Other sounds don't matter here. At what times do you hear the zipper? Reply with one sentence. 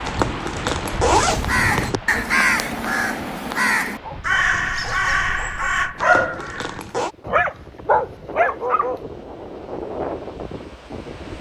The zipper can be heard from 0.1 to 2.0 s and from 6.0 to 7.2 s.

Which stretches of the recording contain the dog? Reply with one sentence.
The dog can be heard from 4.0 to 6.6 s and from 7.2 to 9.0 s.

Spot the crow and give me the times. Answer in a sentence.
You can hear the crow from 1.2 to 6.8 s.